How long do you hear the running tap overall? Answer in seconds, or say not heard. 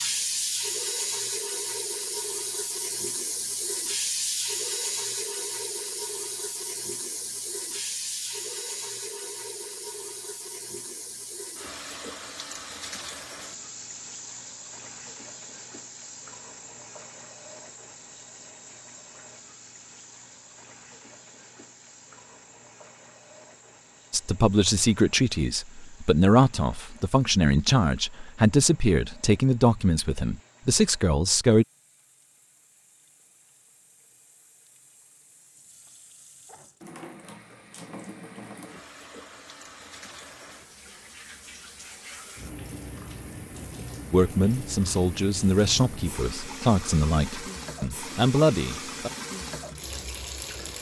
51 s.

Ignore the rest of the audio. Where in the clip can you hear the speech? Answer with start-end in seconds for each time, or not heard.
24.1-31.6, 44.1-49.1.